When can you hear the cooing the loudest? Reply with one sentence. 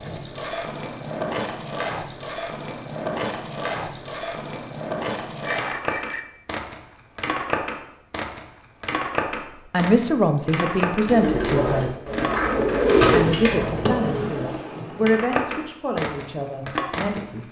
The loudest moment of the cooing is at 13 seconds.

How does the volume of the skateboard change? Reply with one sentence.
The volume of the skateboard stays about the same.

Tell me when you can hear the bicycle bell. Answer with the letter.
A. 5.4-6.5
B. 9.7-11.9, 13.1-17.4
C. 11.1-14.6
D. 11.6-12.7
A.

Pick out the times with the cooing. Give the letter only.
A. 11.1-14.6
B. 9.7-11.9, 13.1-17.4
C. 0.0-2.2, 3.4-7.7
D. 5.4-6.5
A.